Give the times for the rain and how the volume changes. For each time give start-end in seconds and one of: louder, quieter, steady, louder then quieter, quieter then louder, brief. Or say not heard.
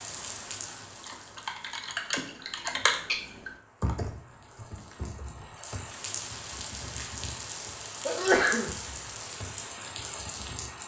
0.0-10.8 quieter then louder.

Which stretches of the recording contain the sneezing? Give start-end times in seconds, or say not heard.
2.5-3.1, 8.1-8.7.